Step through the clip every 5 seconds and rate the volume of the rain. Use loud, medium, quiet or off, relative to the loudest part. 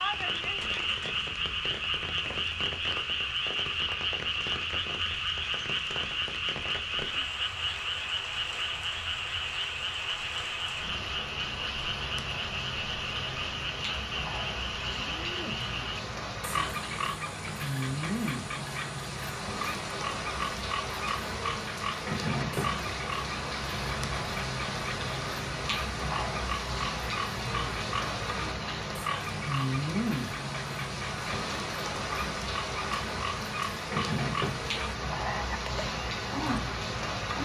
medium, medium, medium, loud, loud, loud, loud, loud.